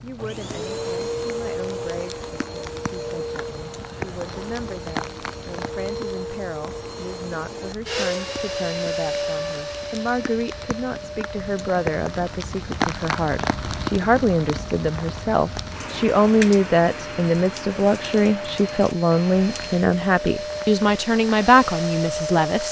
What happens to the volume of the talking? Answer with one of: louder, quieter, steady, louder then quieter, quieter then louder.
louder.